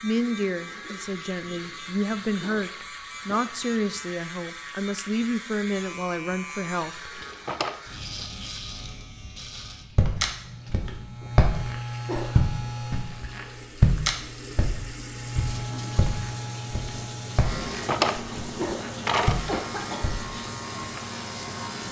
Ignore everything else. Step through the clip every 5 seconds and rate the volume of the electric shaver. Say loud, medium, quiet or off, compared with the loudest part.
medium, medium, loud, loud, loud.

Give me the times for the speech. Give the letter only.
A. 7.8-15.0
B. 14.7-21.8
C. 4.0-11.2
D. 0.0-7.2
D.